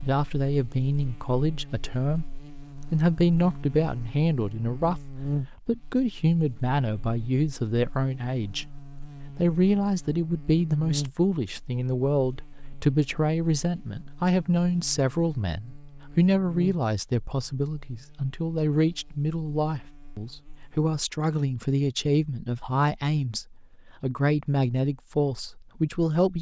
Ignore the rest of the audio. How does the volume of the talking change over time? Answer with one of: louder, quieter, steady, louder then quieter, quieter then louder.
steady.